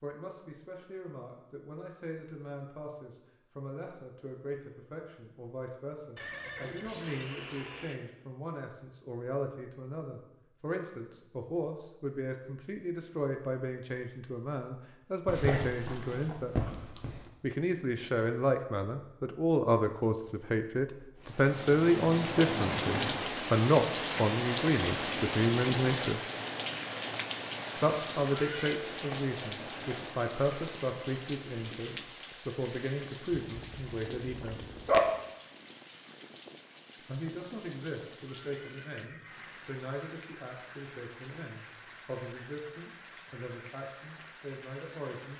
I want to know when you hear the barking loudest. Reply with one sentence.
The loudest moment of the barking is at 35 seconds.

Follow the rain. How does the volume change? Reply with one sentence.
The volume of the rain goes down.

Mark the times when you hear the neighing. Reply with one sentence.
The neighing can be heard from 6.2 to 8.1 s, from 28.3 to 28.8 s and from 38.2 to 39.6 s.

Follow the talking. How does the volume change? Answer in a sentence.
The volume of the talking goes up, then down.